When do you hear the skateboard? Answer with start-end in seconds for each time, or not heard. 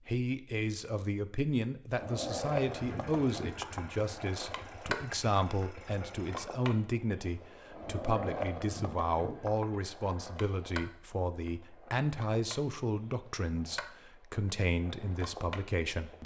1.9-16.2.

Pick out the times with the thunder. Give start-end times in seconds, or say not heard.
not heard.